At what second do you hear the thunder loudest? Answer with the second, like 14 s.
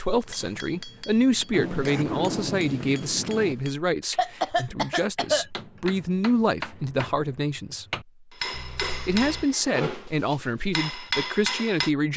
2 s.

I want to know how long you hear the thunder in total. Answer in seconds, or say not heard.
2 s.